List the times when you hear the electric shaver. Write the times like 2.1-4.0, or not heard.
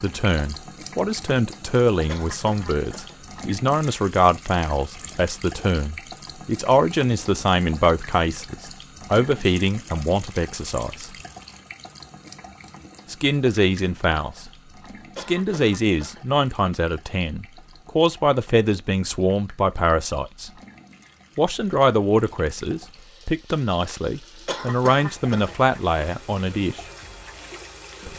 not heard.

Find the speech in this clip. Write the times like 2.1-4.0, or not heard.
0.0-11.1, 13.1-14.5, 15.2-20.5, 21.4-26.9.